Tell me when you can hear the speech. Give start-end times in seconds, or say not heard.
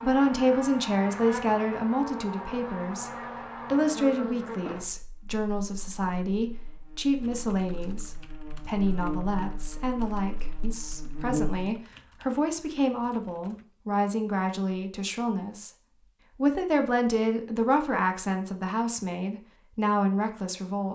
0.0-15.7, 16.4-20.8.